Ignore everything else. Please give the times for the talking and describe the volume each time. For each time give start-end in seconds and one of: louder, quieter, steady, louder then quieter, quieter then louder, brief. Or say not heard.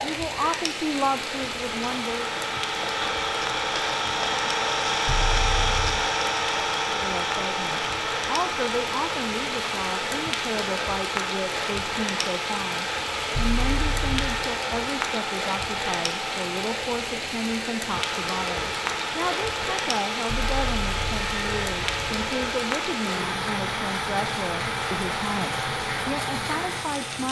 0.0-2.3 brief
6.9-27.2 steady.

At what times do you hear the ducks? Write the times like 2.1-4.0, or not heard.
not heard.